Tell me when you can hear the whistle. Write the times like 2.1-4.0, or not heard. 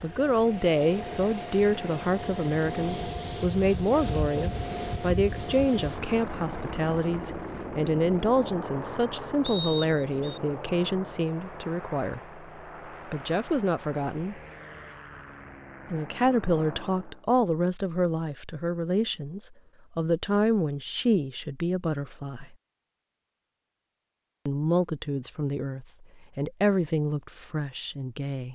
9.4-10.4.